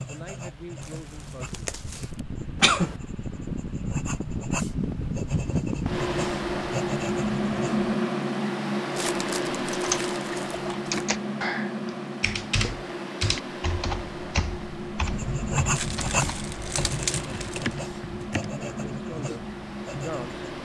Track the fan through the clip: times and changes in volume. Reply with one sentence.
The fan can be heard from 0.0 to 20.6 s, getting louder then quieter.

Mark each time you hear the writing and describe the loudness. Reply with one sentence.
You can hear the writing from 0.0 to 7.8 s, getting quieter then louder; and from 14.9 to 20.6 s, getting quieter.